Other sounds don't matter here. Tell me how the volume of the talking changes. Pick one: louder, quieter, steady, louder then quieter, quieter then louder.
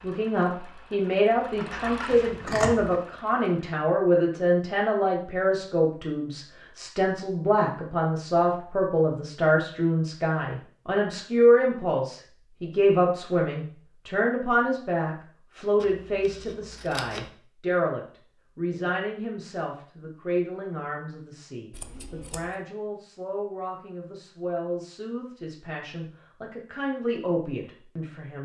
quieter.